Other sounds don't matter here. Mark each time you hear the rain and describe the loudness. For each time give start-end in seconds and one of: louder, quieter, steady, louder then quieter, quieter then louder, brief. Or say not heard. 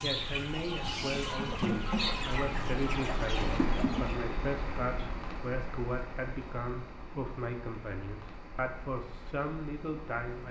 0.1-10.4 louder then quieter.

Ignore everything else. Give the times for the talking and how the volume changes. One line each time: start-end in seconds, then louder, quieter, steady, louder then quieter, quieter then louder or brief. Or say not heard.
0.0-10.4 steady.